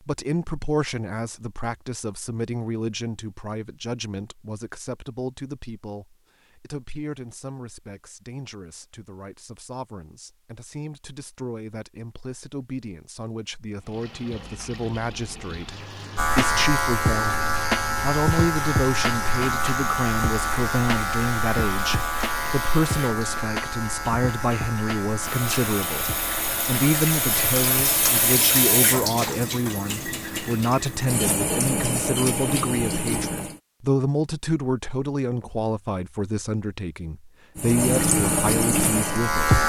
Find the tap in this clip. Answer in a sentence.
You can hear the tap from 13.8 to 33.6 s and from 37.5 to 39.5 s.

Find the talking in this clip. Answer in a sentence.
The talking can be heard from 0.1 to 39.5 s.